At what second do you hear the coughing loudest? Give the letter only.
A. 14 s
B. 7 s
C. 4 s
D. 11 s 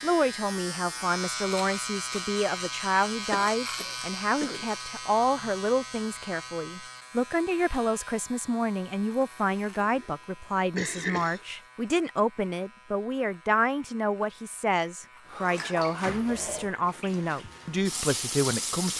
D.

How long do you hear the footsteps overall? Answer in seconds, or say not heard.
not heard.